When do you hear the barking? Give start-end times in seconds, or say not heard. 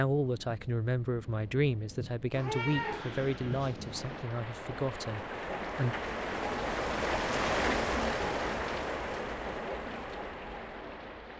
not heard.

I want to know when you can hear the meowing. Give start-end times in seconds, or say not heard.
2.3-4.2.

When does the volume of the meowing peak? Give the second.
3 s.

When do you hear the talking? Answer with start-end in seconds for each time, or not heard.
0.0-6.0.